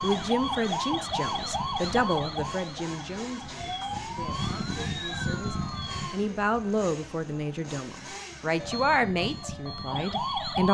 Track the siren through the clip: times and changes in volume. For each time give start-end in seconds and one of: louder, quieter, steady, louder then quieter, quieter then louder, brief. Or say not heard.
0.0-6.2 quieter then louder
8.6-10.6 brief.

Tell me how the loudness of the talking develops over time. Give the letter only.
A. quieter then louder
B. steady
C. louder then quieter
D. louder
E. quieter
A.